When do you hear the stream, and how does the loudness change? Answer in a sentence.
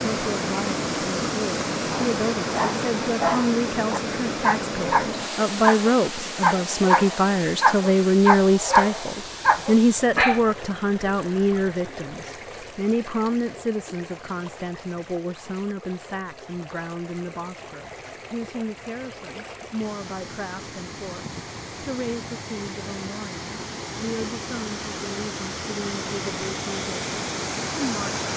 You can hear the stream from 0.0 to 28.3 s, getting quieter then louder.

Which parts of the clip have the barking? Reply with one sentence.
You can hear the barking from 1.9 to 10.4 s.